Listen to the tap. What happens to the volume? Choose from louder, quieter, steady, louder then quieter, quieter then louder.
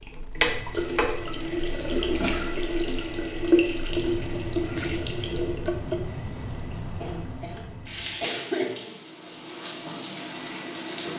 quieter.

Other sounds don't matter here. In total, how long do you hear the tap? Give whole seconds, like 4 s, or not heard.
11 s.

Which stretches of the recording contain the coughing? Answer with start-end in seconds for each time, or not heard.
1.9-2.5, 7.0-8.9.